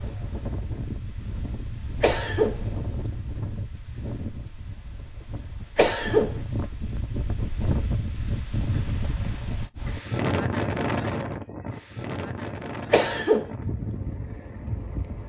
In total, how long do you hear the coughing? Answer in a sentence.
The coughing can be heard for 2 seconds in total.